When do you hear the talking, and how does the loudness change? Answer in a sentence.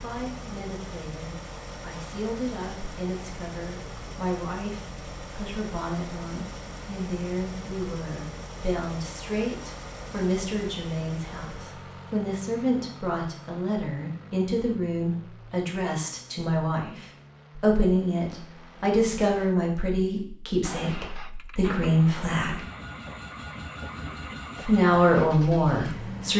You can hear the talking from 0.0 to 22.6 s, getting louder; and briefly from 24.6 to 26.3 s.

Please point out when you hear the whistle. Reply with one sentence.
You can't hear the whistle here.